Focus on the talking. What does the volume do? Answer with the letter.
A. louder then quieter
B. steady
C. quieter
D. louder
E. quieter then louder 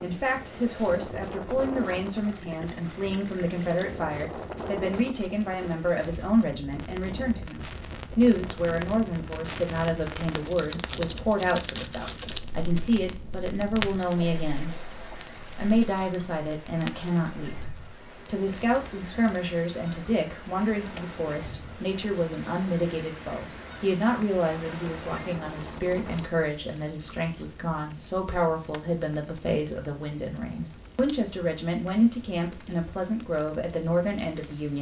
B.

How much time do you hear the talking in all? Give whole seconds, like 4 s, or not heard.
34 s.